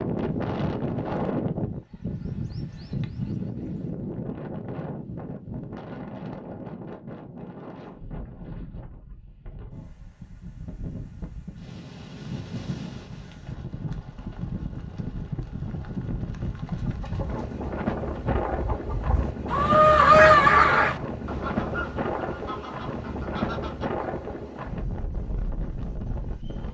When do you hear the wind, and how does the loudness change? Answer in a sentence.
You can hear the wind from 0.0 to 26.6 s, getting quieter then louder.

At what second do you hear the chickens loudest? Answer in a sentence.
The volume of the chickens peaks at 20 seconds.